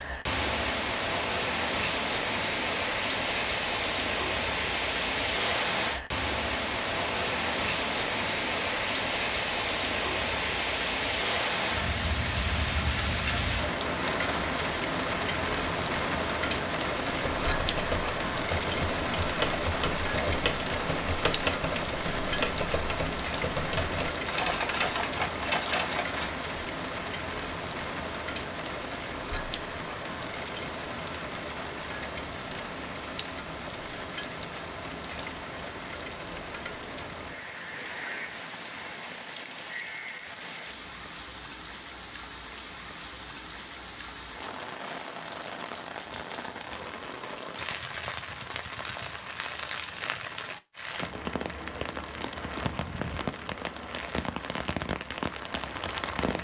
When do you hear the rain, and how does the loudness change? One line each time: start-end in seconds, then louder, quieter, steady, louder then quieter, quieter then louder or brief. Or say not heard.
0.0-56.3 quieter.